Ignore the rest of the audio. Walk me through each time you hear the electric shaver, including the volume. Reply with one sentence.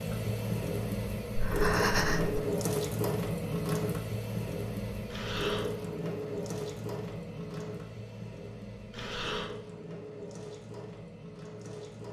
The electric shaver can't be heard in this clip.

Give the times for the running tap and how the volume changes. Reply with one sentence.
You can hear the running tap from 0.0 to 12.0 s, getting quieter.